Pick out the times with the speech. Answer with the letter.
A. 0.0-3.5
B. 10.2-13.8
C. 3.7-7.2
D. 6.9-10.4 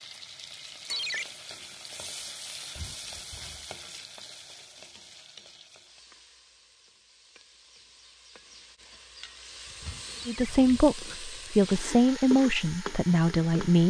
B.